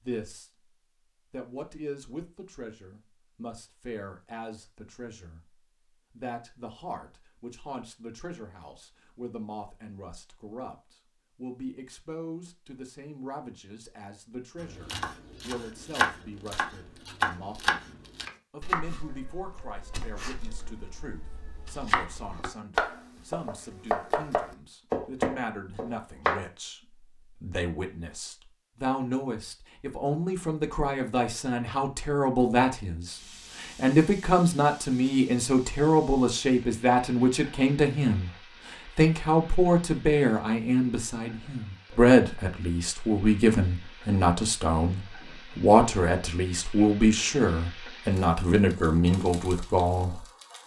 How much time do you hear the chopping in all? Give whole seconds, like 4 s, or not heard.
12 s.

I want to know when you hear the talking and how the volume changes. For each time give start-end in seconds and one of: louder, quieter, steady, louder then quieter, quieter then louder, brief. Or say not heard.
0.0-0.7 brief
1.3-50.2 louder.